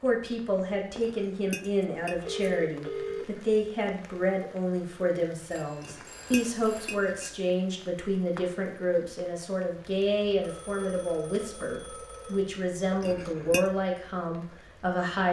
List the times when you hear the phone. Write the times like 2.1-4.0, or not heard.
2.1-3.5, 5.5-7.0, 10.4-12.5.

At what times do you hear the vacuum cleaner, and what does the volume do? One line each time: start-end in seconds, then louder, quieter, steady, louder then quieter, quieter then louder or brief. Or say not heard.
not heard.